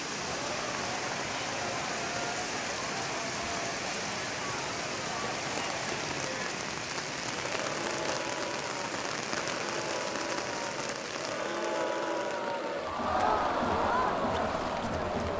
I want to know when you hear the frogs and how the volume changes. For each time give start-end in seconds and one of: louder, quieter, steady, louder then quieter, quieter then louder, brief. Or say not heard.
not heard.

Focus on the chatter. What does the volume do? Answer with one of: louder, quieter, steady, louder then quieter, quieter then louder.
louder.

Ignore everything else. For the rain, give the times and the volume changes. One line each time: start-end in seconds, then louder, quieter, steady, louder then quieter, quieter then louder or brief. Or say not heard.
0.0-15.3 quieter.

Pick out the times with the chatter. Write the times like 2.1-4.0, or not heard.
0.1-15.3.